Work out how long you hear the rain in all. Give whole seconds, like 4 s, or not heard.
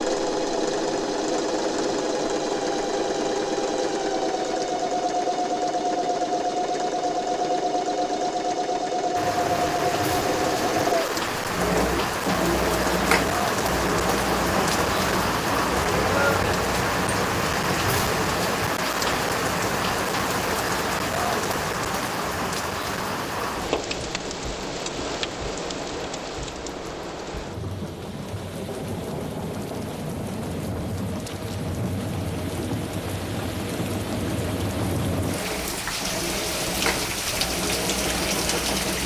30 s.